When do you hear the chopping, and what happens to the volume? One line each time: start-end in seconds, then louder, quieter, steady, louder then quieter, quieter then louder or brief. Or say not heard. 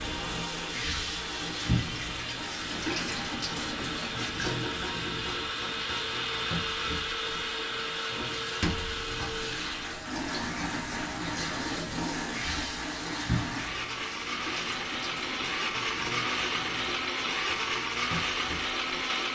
not heard.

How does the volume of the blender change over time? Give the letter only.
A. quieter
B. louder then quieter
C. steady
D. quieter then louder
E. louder
E.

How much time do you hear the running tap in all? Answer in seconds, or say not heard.
19 s.